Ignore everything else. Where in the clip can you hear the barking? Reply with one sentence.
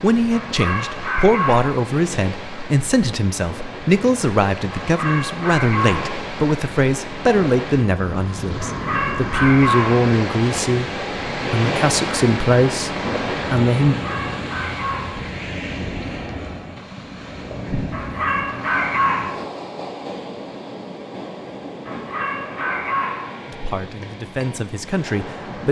The barking can be heard from 0.3 to 1.9 s, from 4.7 to 6.2 s, from 8.6 to 10.1 s, from 13.9 to 15.3 s, from 17.9 to 19.4 s and from 21.9 to 23.4 s.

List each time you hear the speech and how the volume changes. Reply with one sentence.
You can hear the speech from 0.0 to 14.0 s, at a steady volume; and briefly from 23.4 to 25.6 s.